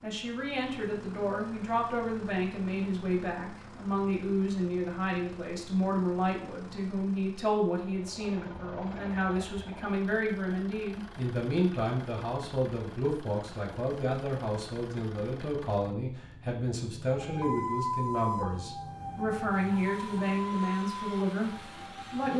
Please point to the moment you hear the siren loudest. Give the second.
18 s.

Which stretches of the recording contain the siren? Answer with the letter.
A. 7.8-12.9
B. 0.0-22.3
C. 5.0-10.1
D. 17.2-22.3
D.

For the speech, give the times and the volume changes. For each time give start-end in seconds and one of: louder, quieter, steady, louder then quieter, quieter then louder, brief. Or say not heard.
0.0-22.3 steady.